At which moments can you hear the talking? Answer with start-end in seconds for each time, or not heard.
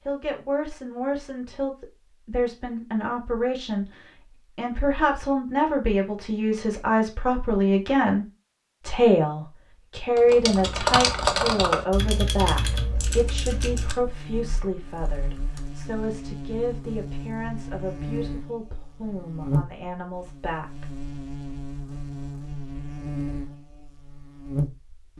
0.1-20.9.